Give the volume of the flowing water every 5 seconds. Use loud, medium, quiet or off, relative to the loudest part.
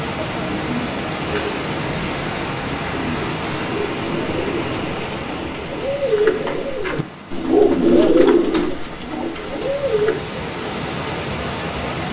loud, medium, loud.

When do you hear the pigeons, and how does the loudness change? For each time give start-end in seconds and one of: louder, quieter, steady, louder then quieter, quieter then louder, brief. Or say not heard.
0.3-10.2 louder.